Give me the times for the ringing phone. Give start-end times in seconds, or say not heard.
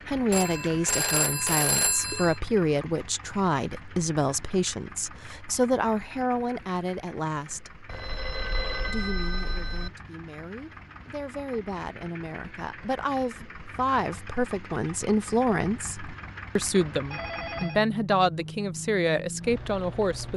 0.3-2.4, 7.8-9.9, 16.9-17.9.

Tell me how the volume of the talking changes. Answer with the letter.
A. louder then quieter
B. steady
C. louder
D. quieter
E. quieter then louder
E.